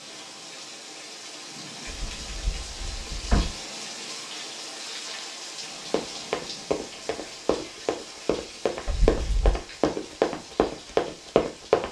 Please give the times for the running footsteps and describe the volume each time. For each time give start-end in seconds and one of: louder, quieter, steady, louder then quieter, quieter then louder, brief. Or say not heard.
5.9-11.8 louder.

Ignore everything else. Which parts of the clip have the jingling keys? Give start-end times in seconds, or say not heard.
1.9-3.5, 8.8-9.6.